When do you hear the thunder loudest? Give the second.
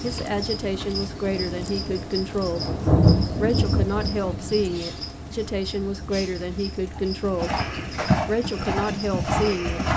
3 s.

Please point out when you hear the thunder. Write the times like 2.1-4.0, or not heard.
1.2-4.8.